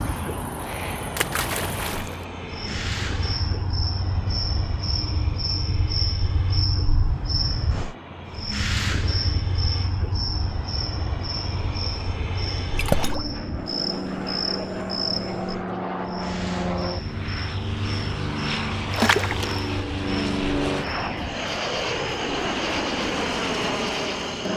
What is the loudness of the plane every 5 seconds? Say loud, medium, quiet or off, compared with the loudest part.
medium, quiet, medium, loud, loud.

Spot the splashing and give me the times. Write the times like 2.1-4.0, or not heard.
1.1-2.1, 12.8-13.3, 18.9-19.8.